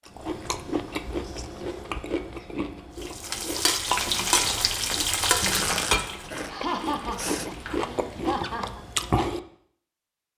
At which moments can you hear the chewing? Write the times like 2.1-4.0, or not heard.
0.1-9.4.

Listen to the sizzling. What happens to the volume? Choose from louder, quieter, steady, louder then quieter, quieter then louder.
quieter.